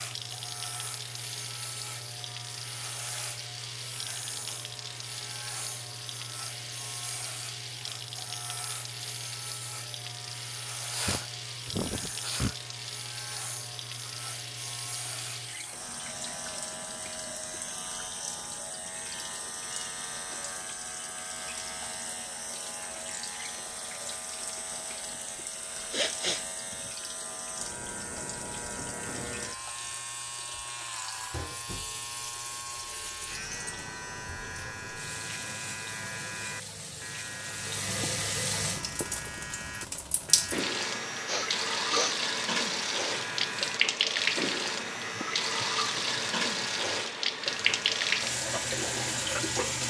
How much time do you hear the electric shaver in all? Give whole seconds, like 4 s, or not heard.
50 s.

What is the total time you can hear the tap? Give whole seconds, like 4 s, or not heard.
50 s.